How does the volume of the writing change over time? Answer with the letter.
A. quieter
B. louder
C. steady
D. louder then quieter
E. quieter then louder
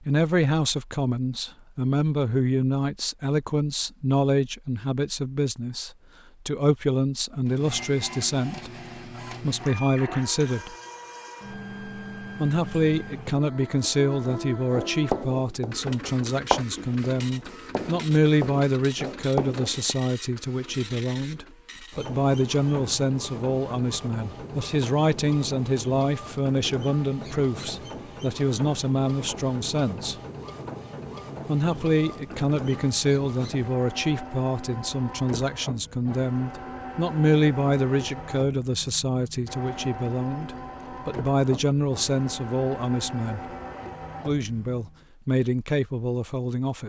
E.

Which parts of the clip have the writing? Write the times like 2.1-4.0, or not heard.
14.2-19.9.